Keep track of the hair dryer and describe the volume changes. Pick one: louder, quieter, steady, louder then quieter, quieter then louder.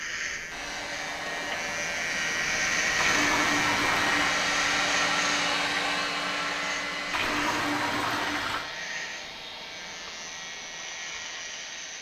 louder then quieter.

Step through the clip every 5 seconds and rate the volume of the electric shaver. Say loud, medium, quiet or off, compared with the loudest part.
loud, medium, medium.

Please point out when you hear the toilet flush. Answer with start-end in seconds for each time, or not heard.
3.0-4.4, 7.1-8.7.